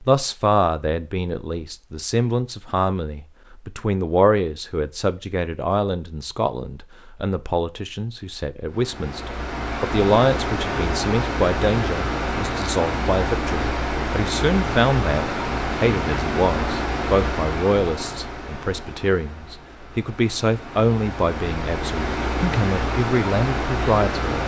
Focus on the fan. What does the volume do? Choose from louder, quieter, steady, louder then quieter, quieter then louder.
quieter then louder.